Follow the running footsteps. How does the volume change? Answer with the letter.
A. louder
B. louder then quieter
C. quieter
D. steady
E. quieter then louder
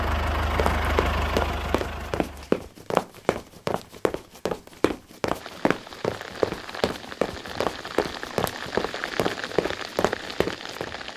D.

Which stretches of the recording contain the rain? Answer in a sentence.
You can hear the rain from 5.3 to 11.1 s.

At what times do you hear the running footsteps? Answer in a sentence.
The running footsteps can be heard from 0.5 to 10.9 s.